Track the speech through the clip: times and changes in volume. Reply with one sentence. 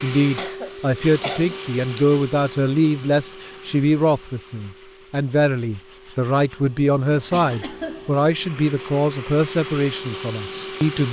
You can hear the speech from 0.0 to 11.0 s, at a steady volume.